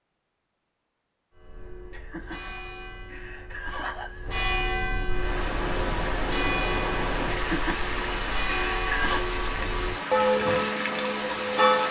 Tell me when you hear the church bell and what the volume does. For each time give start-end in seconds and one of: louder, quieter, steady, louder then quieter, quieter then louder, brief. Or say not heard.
1.3-11.8 louder.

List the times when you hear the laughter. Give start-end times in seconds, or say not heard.
1.9-4.5, 7.3-9.2.